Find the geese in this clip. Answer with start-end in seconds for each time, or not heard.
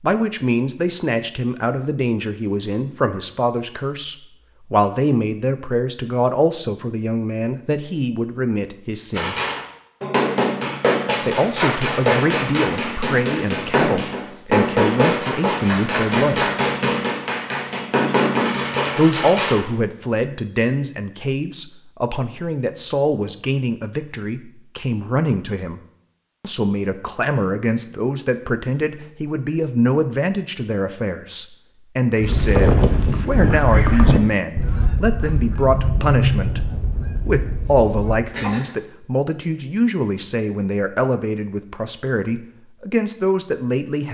32.2-38.7.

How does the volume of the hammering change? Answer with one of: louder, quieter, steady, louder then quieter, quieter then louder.
steady.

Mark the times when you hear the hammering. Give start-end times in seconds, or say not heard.
9.2-19.6.